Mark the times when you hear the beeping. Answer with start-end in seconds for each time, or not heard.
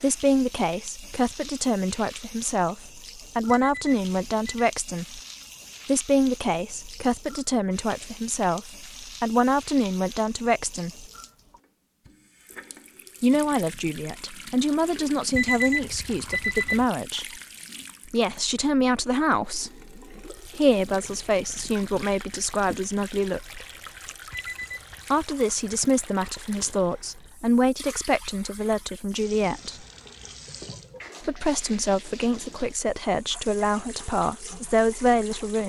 3.5-4.7, 15.3-16.9, 24.3-25.1.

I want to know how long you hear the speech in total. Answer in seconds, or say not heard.
29 s.